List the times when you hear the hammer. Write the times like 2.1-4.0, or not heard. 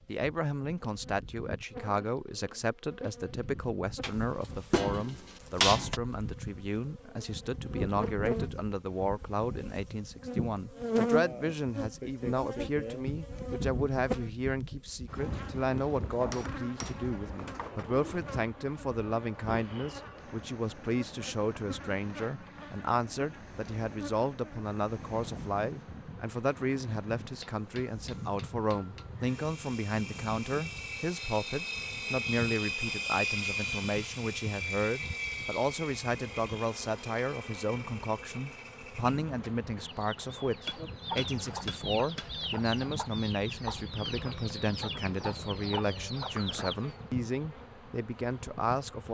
4.0-6.0, 16.3-17.9, 27.4-29.1, 40.6-42.3.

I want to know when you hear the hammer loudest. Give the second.
6 s.